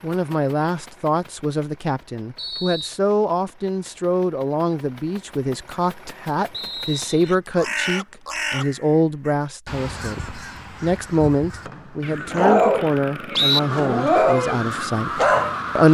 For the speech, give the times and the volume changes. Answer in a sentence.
The speech can be heard from 0.0 to 15.8 s, at a steady volume.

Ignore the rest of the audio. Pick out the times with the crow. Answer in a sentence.
The crow can be heard from 7.2 to 15.8 s.